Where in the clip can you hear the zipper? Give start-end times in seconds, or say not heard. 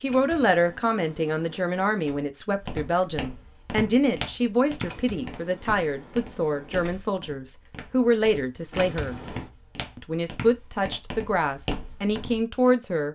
not heard.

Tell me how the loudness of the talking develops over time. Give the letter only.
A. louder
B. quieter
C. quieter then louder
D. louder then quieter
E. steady
E.